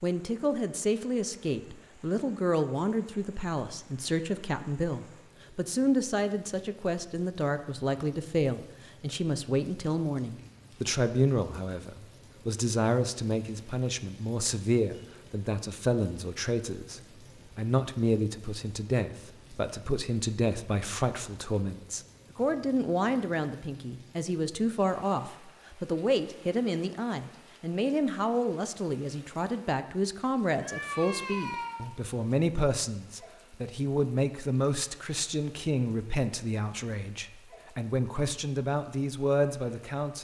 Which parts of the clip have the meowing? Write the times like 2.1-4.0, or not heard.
30.6-31.9.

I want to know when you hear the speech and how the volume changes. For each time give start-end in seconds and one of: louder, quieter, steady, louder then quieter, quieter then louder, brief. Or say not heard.
0.0-40.1 steady.